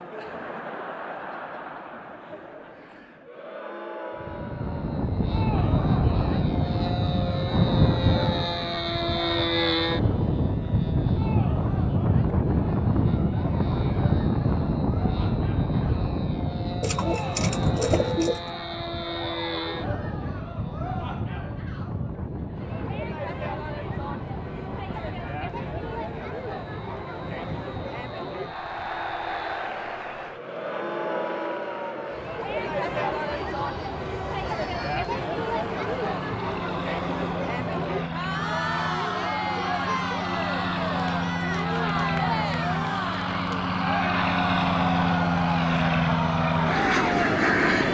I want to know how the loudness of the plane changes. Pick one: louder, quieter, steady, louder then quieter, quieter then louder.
quieter then louder.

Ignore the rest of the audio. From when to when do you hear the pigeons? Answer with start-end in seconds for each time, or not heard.
16.8-18.4.